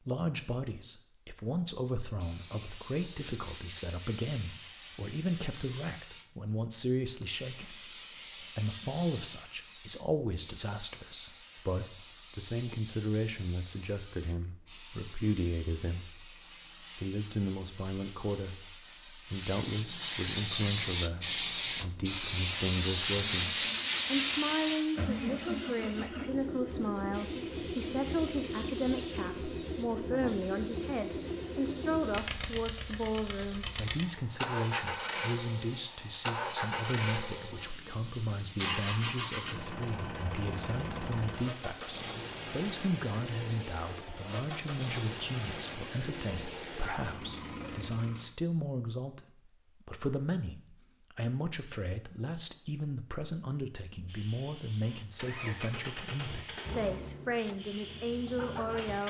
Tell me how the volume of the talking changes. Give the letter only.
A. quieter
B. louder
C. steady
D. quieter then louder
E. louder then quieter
C.